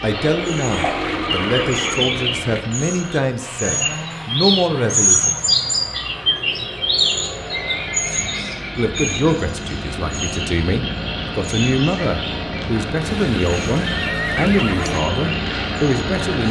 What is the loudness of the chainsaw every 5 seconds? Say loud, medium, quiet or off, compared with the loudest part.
medium, medium, loud, loud.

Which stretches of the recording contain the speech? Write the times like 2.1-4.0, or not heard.
0.0-5.4, 8.8-16.4.